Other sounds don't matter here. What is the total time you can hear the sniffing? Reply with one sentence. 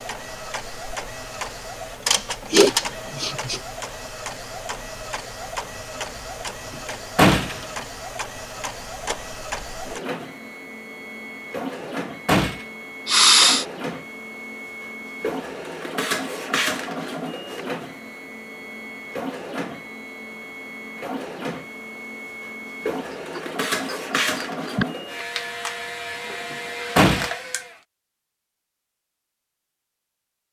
You can hear the sniffing for 3 seconds altogether.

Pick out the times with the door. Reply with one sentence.
The door can be heard from 7.2 to 7.7 s, from 12.2 to 12.7 s and from 26.5 to 27.3 s.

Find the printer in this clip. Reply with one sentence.
The printer can be heard from 0.0 to 27.8 s.